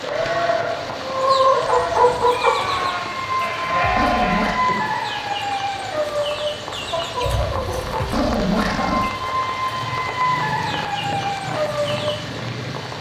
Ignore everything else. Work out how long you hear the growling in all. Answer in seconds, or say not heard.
2 s.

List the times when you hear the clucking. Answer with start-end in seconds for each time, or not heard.
1.0-12.4.